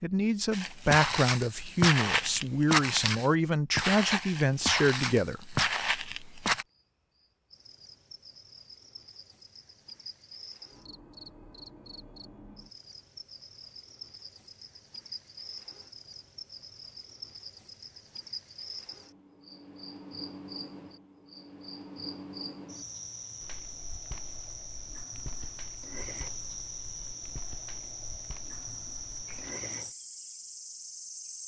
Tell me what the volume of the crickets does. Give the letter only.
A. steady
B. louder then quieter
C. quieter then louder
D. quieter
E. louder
E.